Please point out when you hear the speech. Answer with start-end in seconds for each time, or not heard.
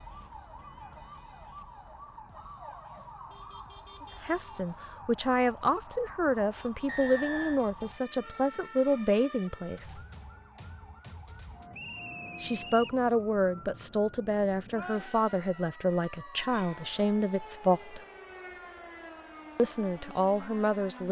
4.0-10.0, 12.4-18.0, 19.6-21.0.